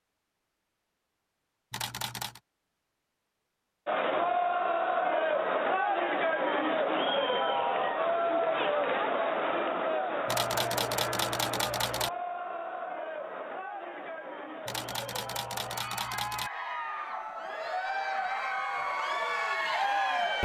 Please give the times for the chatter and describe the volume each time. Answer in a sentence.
The chatter can be heard from 3.9 to 20.4 s, getting quieter then louder.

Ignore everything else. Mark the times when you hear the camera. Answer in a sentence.
The camera can be heard from 1.7 to 2.4 s, from 10.2 to 12.1 s and from 14.7 to 16.5 s.